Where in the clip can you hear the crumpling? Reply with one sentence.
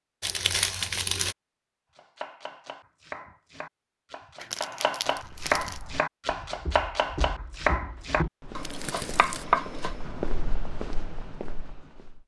The crumpling can be heard from 0.2 to 1.4 s, from 4.3 to 5.8 s and from 8.6 to 9.4 s.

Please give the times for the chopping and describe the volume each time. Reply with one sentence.
The chopping can be heard from 1.9 to 10.2 s, getting louder.